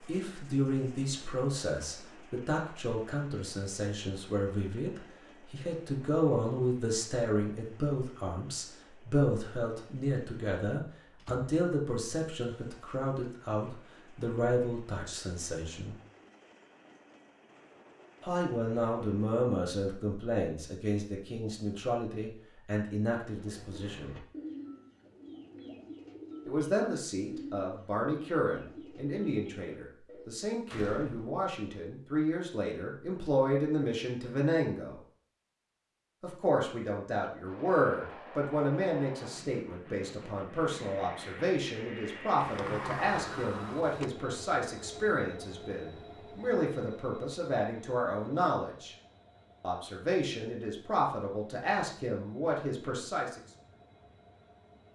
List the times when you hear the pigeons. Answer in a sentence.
You can hear the pigeons from 23.2 to 30.4 s.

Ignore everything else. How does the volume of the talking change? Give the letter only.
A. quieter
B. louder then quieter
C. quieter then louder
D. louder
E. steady
E.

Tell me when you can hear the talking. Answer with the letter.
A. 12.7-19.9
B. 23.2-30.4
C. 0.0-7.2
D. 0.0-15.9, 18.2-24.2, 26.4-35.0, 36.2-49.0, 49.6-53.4
D.